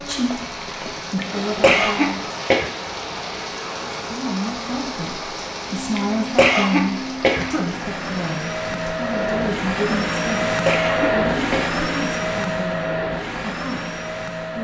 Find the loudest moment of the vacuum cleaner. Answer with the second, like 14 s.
11 s.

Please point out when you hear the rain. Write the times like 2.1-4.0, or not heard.
0.0-9.4.